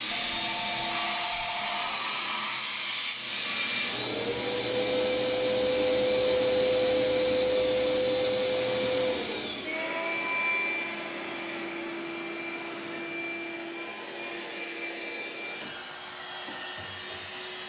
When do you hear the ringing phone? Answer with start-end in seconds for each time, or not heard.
0.1-2.0.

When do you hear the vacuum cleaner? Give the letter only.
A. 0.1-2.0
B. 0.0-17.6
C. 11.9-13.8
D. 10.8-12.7
B.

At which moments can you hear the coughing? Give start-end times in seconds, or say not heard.
not heard.